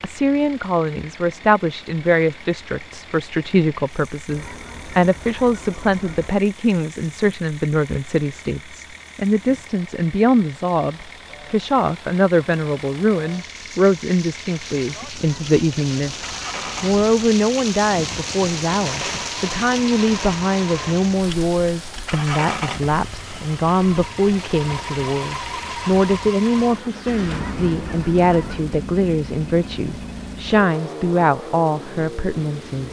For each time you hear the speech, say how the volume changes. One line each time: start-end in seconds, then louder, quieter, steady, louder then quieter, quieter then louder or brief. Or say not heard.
0.0-32.8 steady.